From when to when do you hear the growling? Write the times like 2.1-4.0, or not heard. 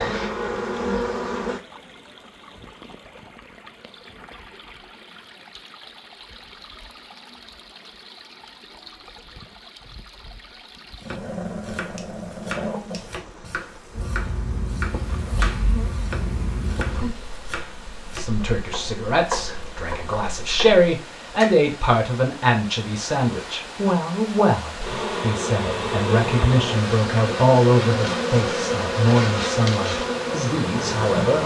11.0-13.5, 16.1-17.4.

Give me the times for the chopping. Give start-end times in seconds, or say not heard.
11.0-21.6.